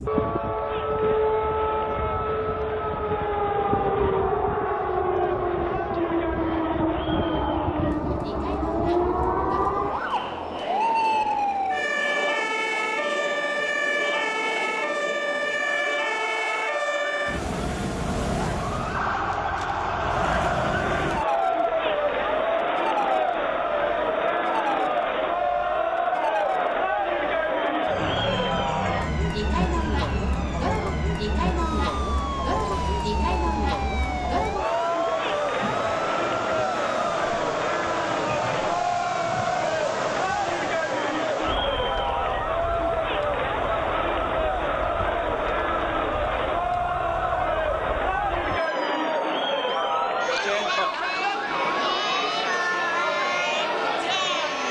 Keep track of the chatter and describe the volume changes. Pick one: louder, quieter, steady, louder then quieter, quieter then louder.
louder.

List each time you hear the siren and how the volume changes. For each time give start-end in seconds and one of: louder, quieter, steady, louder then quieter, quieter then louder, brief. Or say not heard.
0.0-54.6 quieter.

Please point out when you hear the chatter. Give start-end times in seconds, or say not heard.
0.0-54.6.